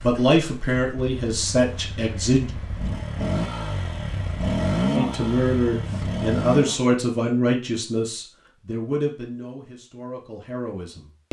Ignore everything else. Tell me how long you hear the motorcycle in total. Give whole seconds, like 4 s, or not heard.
7 s.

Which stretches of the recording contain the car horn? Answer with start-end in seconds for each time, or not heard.
not heard.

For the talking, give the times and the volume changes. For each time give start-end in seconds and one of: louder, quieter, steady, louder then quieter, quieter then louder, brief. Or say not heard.
0.0-2.5 brief
5.0-11.2 quieter.